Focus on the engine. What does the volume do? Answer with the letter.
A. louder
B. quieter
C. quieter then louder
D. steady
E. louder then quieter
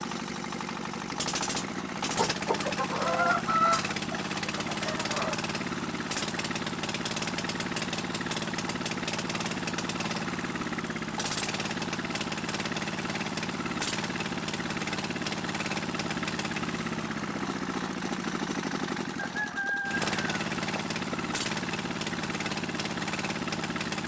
D.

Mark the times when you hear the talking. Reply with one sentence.
The talking can't be heard in this clip.